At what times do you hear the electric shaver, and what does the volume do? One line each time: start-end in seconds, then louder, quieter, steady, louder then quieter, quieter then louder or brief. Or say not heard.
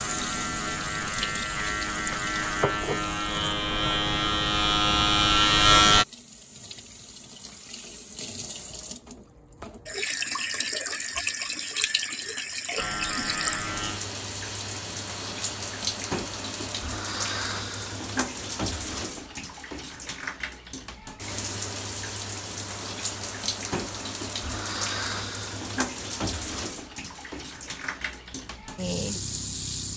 0.0-6.0 louder
12.8-16.8 quieter.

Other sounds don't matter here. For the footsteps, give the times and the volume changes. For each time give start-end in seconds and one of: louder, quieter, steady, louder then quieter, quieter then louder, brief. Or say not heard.
not heard.